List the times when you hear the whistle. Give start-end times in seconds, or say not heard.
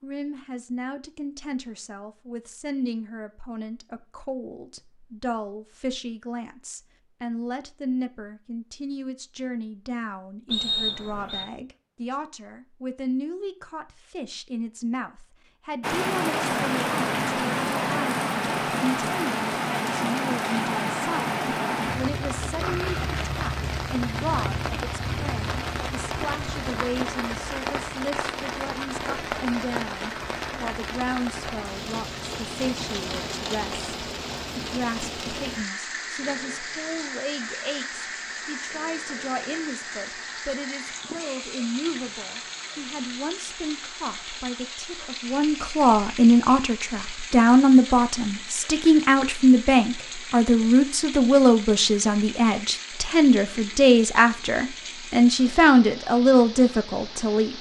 10.5-11.4.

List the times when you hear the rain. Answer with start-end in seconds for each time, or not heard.
15.8-57.5.